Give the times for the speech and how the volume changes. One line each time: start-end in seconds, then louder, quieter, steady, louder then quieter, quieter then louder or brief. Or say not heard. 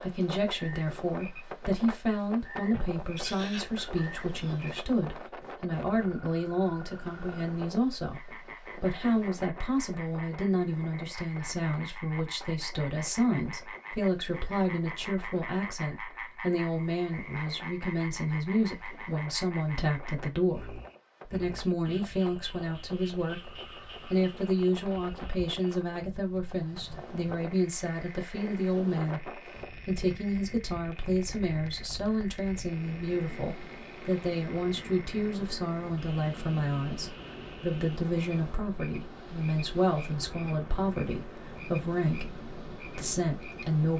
0.0-43.9 steady.